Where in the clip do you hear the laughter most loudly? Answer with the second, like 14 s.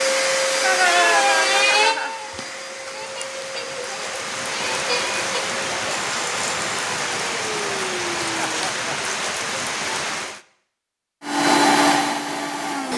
1 s.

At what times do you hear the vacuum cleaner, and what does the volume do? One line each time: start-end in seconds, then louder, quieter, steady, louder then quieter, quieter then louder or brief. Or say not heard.
0.0-8.6 quieter
11.2-12.9 brief.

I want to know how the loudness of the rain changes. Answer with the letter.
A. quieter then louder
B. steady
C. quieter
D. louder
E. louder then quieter
D.